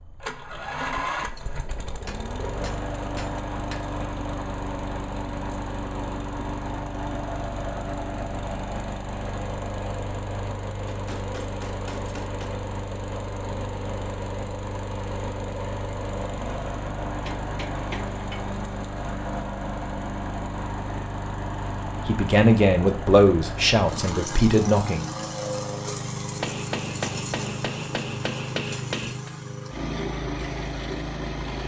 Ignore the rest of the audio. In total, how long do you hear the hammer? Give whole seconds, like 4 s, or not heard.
8 s.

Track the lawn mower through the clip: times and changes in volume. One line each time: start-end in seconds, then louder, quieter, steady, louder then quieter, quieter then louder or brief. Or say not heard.
0.0-31.6 steady.